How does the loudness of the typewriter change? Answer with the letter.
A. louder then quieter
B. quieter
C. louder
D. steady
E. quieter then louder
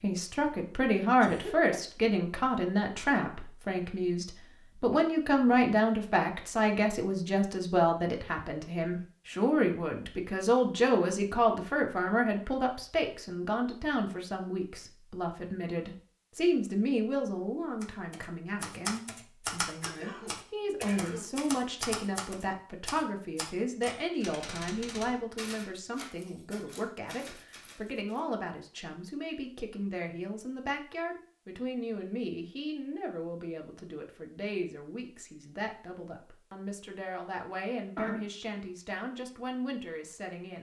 B.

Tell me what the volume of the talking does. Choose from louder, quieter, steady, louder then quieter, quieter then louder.
quieter.